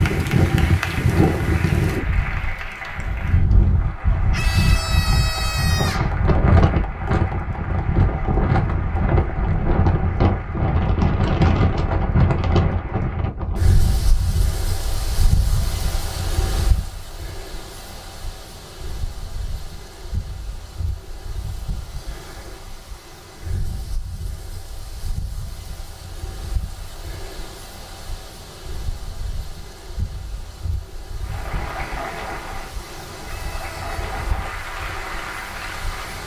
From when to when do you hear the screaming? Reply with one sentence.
The screaming can be heard from 4.3 to 6.2 s and from 33.2 to 33.9 s.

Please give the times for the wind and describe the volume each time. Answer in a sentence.
The wind can be heard from 0.0 to 36.2 s, getting quieter.